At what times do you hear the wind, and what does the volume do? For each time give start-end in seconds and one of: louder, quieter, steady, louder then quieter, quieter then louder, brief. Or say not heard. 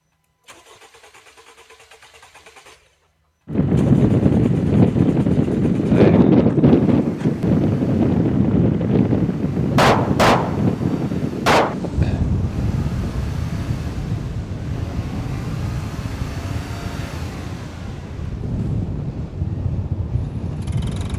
3.5-21.1 quieter.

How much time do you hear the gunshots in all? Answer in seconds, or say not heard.
2 s.